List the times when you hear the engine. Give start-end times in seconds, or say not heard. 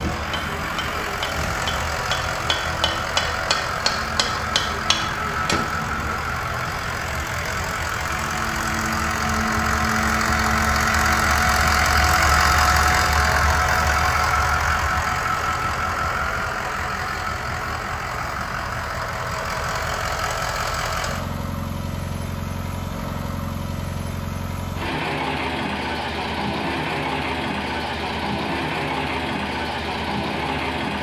0.0-30.9.